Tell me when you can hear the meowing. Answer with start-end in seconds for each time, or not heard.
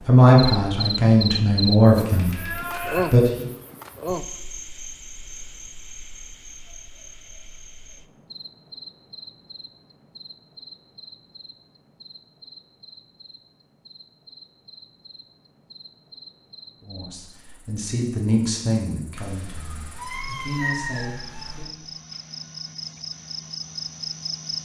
2.0-3.1, 19.1-21.6.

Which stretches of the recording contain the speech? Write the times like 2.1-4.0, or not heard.
0.1-3.5, 16.8-21.6.